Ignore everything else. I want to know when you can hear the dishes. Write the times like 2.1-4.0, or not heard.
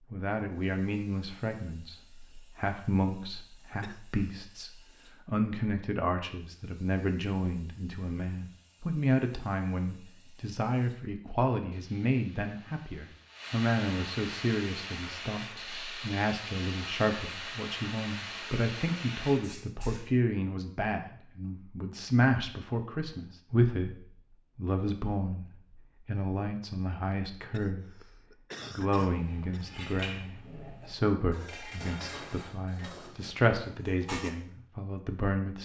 28.6-34.4.